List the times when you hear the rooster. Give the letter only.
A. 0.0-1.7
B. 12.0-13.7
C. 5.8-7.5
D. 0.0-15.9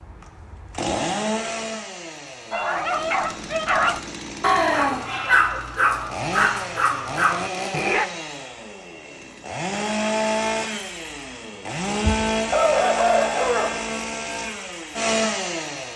B.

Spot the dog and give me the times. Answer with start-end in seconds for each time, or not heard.
2.5-8.1.